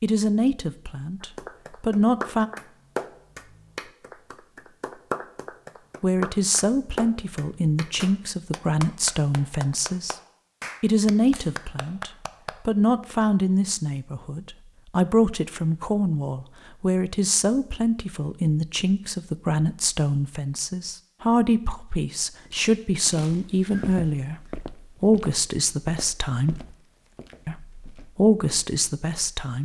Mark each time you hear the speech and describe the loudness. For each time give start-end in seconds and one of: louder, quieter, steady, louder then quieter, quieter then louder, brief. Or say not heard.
0.0-2.5 brief
6.0-10.2 steady
10.8-26.6 steady
27.4-29.5 brief.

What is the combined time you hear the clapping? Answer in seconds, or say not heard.
11 s.